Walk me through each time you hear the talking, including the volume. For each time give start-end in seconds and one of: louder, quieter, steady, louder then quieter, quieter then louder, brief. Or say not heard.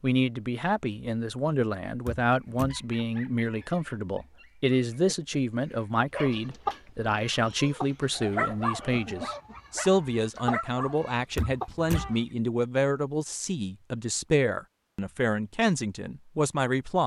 0.0-17.0 steady.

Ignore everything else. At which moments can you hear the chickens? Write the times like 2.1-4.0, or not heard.
6.2-12.3.